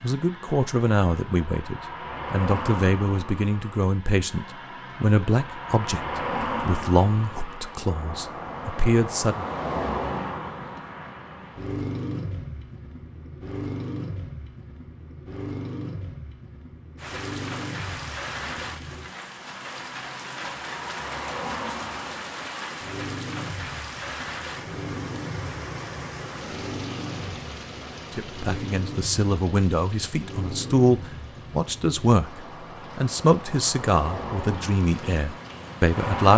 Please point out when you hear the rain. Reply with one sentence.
You can hear the rain from 16.9 to 36.2 s.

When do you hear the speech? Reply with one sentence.
The speech can be heard from 0.0 to 9.4 s and from 28.1 to 36.3 s.